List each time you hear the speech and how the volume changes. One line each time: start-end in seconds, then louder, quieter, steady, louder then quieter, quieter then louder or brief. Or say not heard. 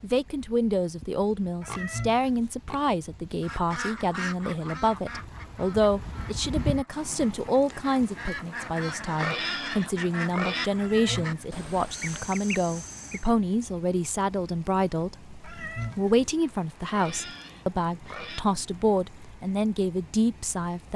0.0-20.9 steady.